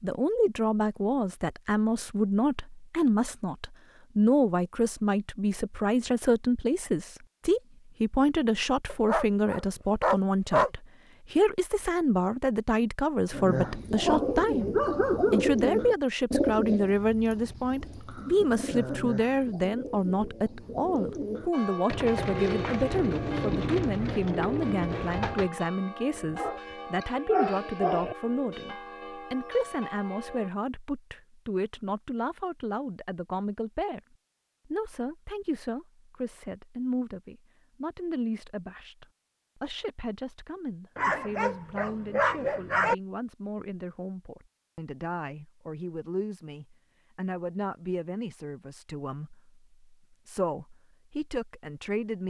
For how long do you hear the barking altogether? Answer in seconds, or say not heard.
7 s.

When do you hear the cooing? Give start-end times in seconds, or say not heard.
13.3-25.5.